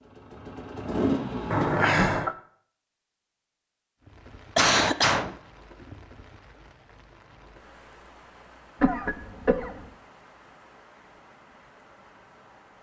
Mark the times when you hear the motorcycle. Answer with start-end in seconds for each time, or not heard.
0.0-1.9.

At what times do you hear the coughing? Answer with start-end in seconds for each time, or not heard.
1.5-2.4, 4.5-5.3, 8.8-9.9.